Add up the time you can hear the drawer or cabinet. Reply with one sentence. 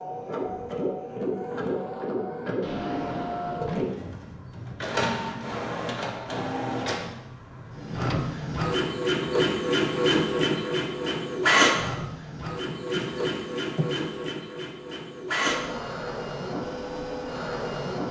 The drawer or cabinet can be heard for 3 seconds in total.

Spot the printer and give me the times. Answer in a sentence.
The printer can be heard from 0.0 to 18.0 s.